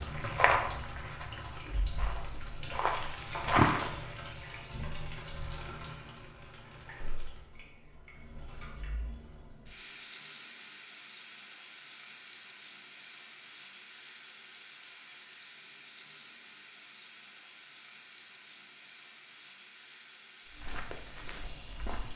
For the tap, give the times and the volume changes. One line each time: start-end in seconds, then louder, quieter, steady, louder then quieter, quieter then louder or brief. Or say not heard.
0.0-22.1 quieter.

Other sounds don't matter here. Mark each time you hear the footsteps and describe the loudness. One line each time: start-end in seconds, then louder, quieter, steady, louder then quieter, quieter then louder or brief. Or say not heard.
0.0-4.2 quieter then louder
20.5-22.1 brief.